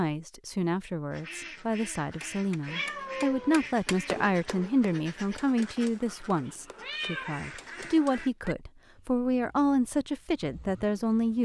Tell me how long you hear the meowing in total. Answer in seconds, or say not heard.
3 s.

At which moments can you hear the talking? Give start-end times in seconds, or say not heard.
0.0-11.4.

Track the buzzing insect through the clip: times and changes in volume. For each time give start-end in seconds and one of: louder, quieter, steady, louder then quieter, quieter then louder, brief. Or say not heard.
not heard.